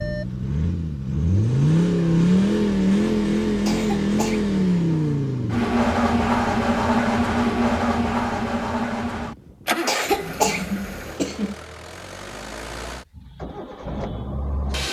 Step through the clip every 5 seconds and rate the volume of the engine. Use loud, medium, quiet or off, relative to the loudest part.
loud, loud, quiet.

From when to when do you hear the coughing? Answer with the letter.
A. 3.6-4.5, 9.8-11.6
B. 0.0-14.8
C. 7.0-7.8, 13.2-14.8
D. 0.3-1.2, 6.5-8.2
A.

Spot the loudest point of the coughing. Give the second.
10 s.